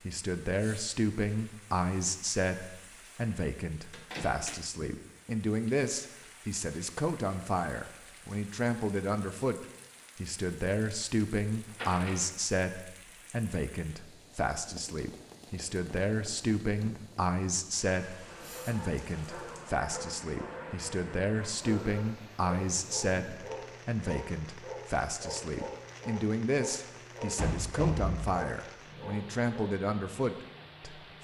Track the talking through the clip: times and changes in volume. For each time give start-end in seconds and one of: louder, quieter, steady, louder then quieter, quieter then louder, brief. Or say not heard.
0.0-31.0 steady.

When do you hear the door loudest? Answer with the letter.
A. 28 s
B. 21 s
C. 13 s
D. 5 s
A.